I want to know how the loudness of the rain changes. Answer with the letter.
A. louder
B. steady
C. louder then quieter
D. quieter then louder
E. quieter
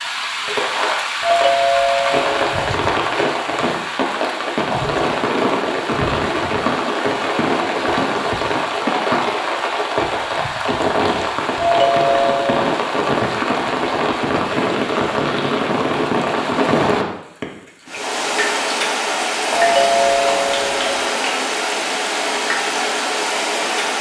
B.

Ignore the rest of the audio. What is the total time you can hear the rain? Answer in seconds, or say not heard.
24 s.